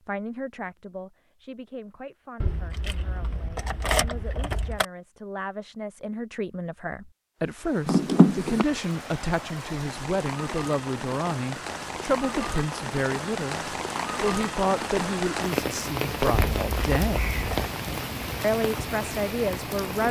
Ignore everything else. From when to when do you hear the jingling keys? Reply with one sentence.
You can hear the jingling keys from 2.4 to 4.8 s, from 7.8 to 8.7 s and from 16.3 to 17.7 s.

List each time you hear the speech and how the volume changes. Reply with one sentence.
You can hear the speech from 0.1 to 17.2 s, getting louder; and briefly from 18.4 to 20.0 s.